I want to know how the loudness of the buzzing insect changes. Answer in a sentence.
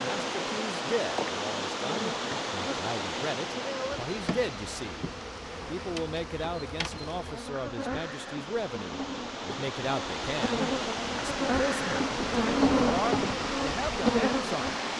The volume of the buzzing insect goes up.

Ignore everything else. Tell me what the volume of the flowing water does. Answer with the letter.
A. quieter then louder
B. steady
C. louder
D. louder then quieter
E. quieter
A.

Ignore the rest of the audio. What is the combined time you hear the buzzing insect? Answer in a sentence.
You can hear the buzzing insect for 15 seconds altogether.